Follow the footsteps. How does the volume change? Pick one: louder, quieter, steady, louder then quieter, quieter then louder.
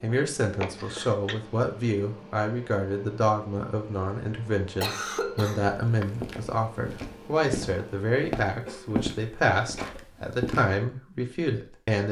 louder then quieter.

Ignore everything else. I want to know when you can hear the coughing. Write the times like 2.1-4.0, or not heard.
0.6-1.4, 4.8-6.0, 8.4-10.0.